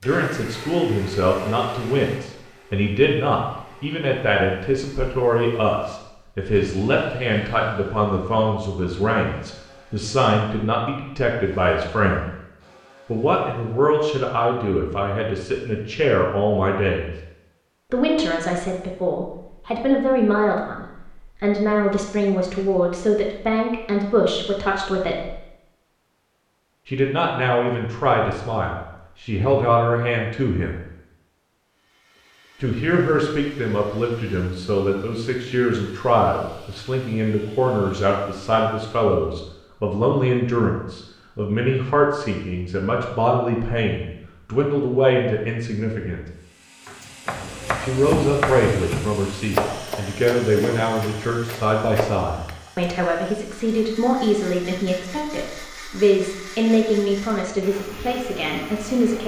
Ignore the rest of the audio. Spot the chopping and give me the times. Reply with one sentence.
The chopping can be heard from 46.9 to 52.9 s.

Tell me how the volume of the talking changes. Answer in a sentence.
The volume of the talking stays about the same.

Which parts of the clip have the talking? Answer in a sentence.
You can hear the talking from 0.0 to 12.3 s, from 13.1 to 17.1 s, from 17.9 to 25.4 s, from 26.9 to 30.8 s, from 32.6 to 46.2 s and from 47.8 to 59.2 s.